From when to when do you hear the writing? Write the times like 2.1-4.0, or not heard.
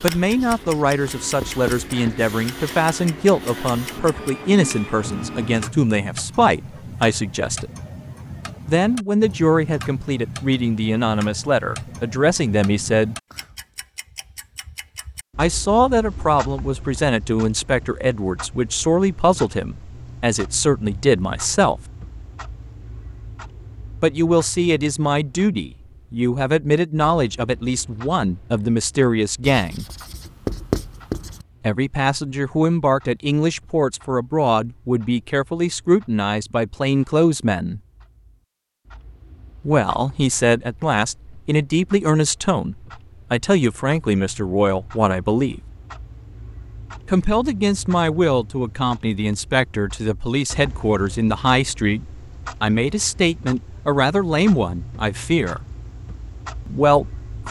0.3-2.3, 29.4-31.4.